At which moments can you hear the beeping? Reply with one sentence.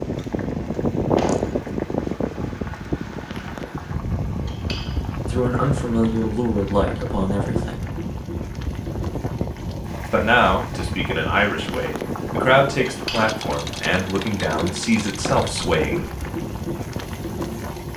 You can't hear the beeping here.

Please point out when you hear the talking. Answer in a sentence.
You can hear the talking from 5.2 to 7.8 s and from 10.1 to 16.1 s.